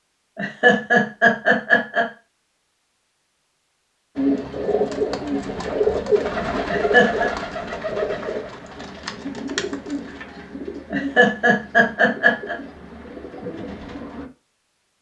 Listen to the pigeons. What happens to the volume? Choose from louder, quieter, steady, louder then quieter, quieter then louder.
quieter.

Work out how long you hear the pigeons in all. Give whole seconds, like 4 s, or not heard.
10 s.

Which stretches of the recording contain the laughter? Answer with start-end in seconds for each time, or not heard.
0.3-2.0, 6.7-7.3, 10.9-12.6.